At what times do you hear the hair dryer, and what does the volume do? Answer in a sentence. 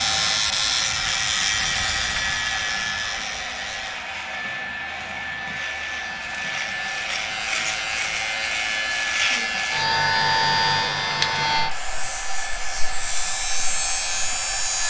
The hair dryer can be heard from 0.0 to 14.8 s, at a steady volume.